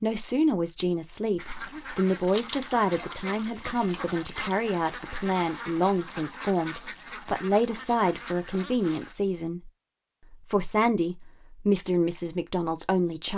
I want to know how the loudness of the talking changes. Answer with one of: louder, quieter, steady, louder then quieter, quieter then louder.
steady.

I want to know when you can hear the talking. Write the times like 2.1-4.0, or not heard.
0.0-9.7, 10.3-13.3.